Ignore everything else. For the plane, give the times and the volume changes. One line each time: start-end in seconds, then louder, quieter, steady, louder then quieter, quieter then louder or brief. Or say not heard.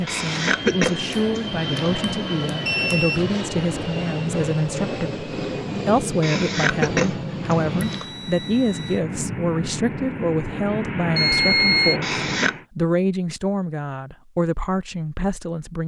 0.0-12.7 steady.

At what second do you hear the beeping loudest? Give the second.
12 s.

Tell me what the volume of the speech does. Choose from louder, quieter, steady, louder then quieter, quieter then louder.
steady.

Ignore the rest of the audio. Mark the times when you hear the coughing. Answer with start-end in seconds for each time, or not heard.
0.1-2.0, 6.2-8.1, 12.0-12.6.